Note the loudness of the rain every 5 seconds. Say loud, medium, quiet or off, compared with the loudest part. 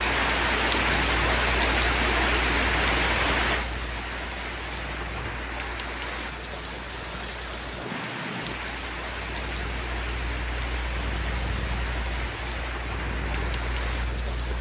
loud, medium, medium.